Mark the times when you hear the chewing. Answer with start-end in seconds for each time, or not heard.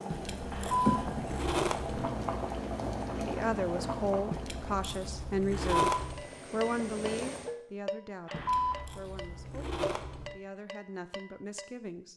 0.1-2.1, 4.3-6.2, 8.3-10.3.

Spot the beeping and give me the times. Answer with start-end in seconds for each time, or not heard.
0.5-1.0, 5.5-6.0, 8.2-8.8.